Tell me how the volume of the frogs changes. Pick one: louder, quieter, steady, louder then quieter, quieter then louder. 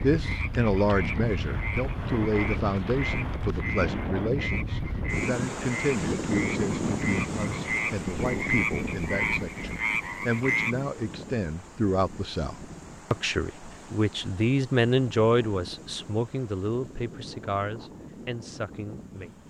louder.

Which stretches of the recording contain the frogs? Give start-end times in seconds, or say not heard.
0.0-10.8.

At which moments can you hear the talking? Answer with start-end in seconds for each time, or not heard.
0.0-19.4.